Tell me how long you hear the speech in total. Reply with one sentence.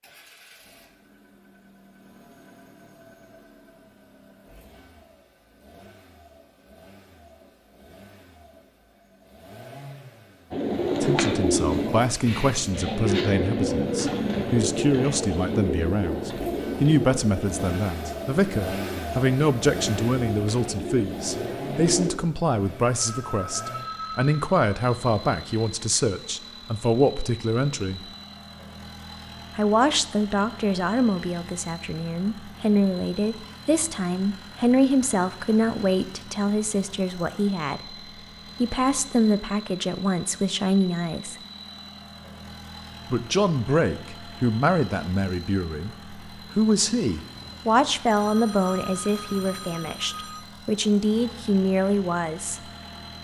The speech can be heard for 38 seconds in total.